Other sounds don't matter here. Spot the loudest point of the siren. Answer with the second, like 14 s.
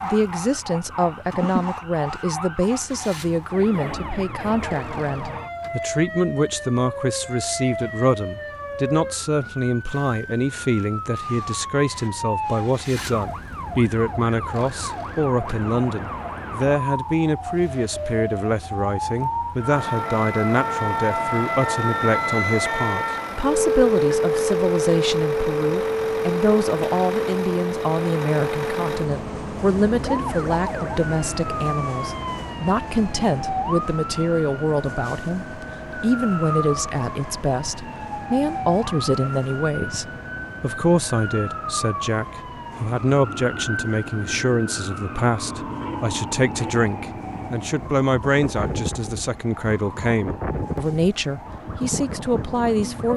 24 s.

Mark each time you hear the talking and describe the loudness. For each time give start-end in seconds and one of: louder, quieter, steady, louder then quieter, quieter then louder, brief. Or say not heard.
0.0-53.1 steady.